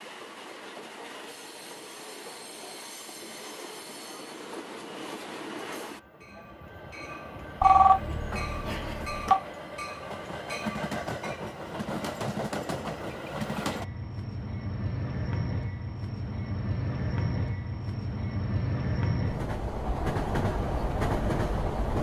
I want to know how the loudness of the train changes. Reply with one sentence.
The volume of the train goes up.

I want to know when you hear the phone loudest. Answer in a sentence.
The loudest moment of the phone is at 8 seconds.